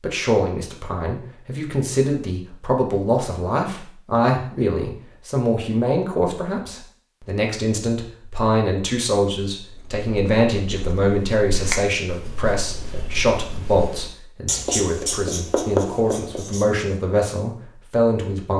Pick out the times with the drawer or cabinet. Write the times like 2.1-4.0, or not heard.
not heard.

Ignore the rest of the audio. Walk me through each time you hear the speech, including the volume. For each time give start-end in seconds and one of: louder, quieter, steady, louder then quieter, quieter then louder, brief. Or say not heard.
0.0-18.5 steady.